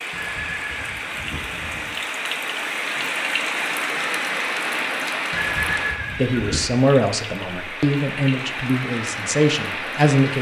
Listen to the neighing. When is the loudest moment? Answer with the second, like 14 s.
6 s.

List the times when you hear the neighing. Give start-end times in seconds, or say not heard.
0.1-1.9, 5.3-6.8.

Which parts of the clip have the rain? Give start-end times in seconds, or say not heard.
0.0-10.3.